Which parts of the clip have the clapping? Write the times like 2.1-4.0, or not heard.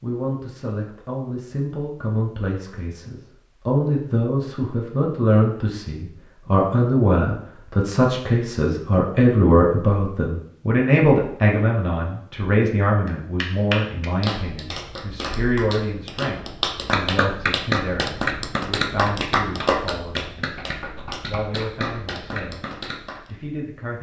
13.1-23.3.